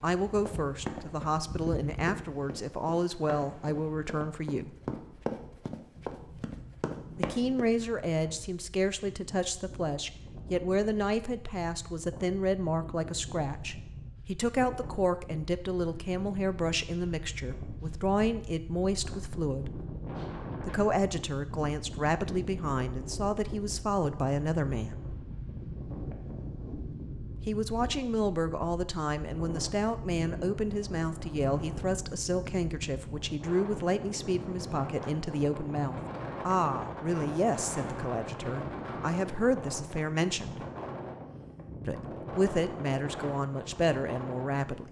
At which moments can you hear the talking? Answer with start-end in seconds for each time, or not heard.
0.0-4.8, 7.2-19.8, 20.6-25.0, 27.4-40.6, 41.8-44.8.